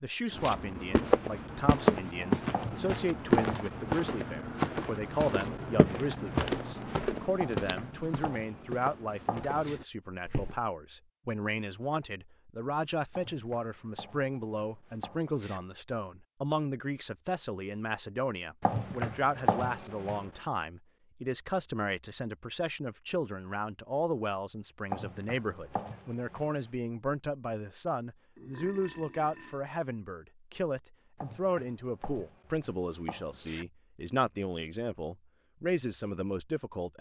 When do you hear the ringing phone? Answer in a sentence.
You can't hear the ringing phone here.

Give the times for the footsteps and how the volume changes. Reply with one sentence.
The footsteps can be heard from 0.3 to 10.6 s, getting quieter.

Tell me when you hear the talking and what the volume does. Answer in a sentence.
The talking can be heard from 0.0 to 36.9 s, at a steady volume.